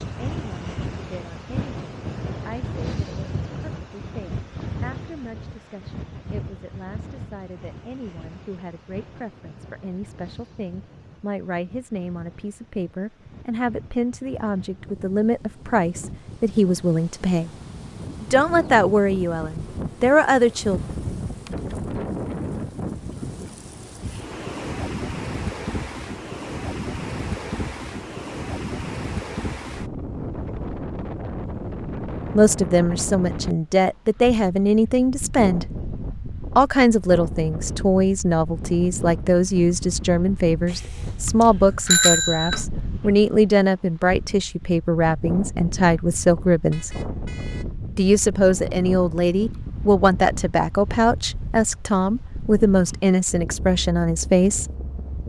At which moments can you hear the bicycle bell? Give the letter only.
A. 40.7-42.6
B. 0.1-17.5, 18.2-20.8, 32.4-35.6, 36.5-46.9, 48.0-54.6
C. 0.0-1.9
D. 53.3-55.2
A.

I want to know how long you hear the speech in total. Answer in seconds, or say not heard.
40 s.